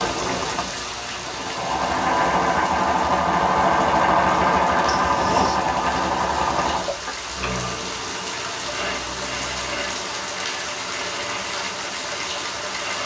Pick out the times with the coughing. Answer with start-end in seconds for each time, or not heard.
not heard.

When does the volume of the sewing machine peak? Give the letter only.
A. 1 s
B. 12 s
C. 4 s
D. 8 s
C.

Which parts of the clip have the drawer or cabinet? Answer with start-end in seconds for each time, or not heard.
5.0-5.6.